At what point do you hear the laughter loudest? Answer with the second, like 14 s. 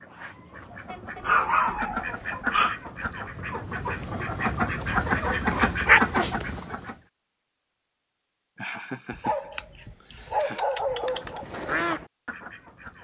9 s.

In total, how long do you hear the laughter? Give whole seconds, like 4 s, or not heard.
2 s.